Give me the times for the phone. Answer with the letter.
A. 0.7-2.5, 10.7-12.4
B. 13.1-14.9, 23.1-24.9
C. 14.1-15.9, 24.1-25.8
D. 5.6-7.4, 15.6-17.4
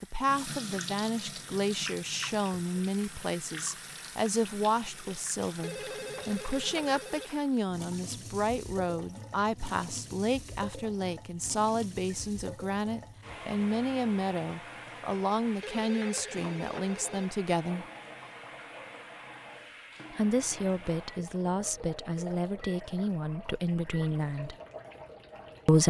D.